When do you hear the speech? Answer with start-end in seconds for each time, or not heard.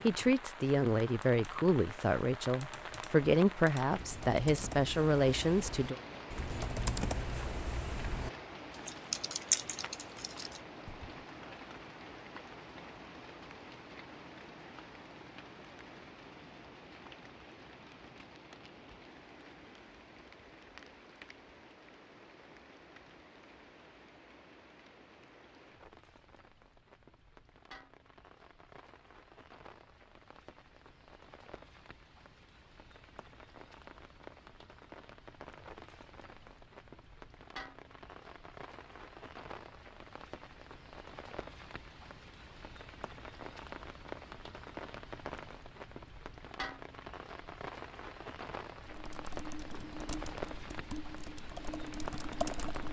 0.0-6.0.